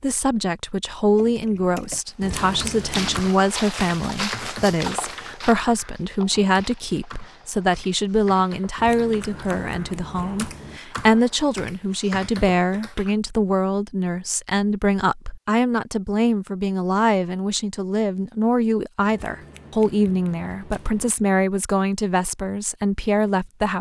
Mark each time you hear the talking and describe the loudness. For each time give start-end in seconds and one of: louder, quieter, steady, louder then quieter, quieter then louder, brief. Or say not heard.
0.0-23.7 steady.